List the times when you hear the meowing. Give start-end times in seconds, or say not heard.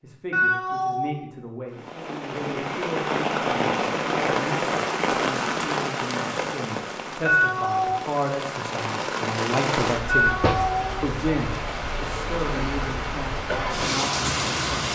0.3-1.2, 7.2-8.0, 10.1-11.1.